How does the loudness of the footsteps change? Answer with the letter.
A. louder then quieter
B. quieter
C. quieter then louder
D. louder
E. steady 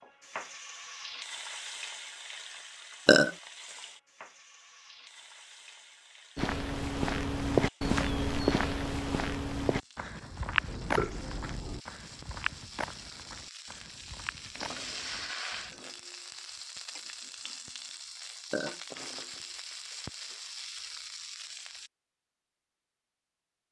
B.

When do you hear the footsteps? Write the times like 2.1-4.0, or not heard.
6.3-15.8.